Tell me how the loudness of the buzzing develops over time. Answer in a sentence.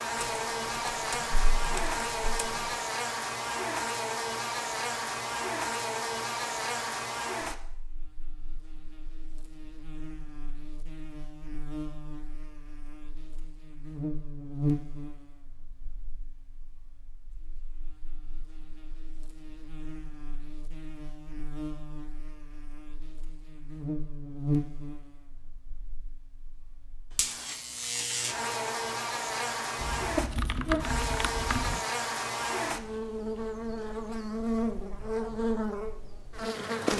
The loudness of the buzzing goes down, then up.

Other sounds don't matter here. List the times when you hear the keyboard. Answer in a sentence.
You can hear the keyboard from 0.2 to 2.8 s and from 29.8 to 31.8 s.